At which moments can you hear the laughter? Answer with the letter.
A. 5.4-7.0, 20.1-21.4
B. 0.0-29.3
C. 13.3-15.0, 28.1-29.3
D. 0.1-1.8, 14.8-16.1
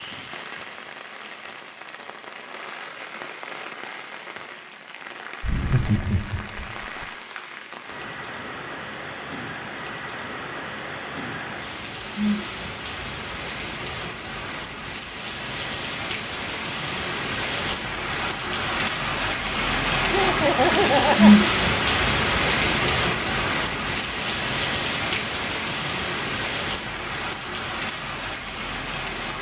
A.